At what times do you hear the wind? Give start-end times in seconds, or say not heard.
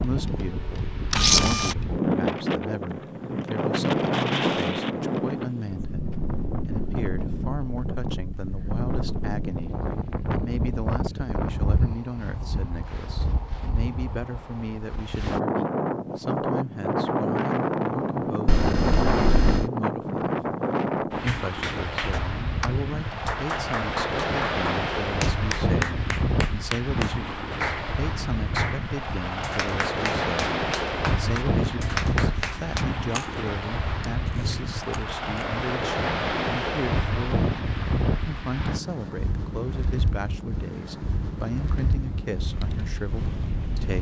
0.0-43.9.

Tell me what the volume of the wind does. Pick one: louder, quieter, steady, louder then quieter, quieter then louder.
steady.